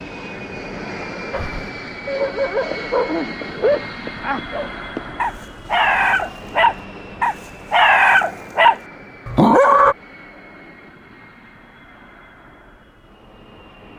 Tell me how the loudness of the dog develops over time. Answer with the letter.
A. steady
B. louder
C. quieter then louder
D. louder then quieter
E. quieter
B.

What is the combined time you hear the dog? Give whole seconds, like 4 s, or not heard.
9 s.